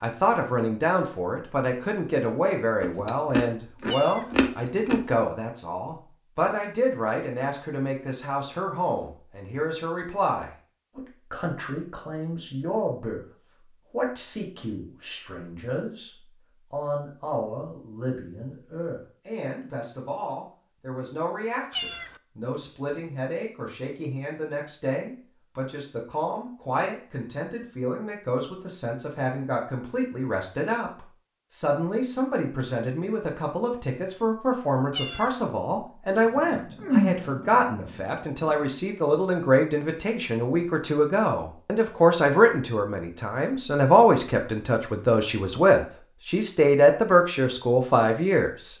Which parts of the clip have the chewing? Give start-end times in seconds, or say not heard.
2.8-5.0, 36.1-38.6.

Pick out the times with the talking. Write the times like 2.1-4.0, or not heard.
0.0-48.7.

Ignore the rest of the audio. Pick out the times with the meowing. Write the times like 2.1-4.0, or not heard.
3.9-4.3, 21.7-22.2, 34.9-35.4.